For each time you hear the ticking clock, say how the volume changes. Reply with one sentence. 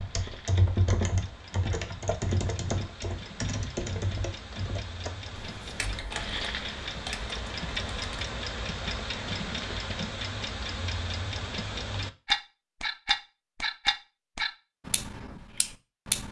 You can hear the ticking clock from 0.0 to 16.2 s, getting louder.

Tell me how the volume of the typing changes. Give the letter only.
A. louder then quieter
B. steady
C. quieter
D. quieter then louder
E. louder
C.